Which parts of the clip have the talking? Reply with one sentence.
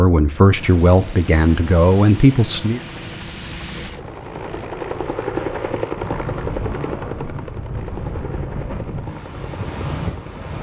You can hear the talking from 0.0 to 2.8 s.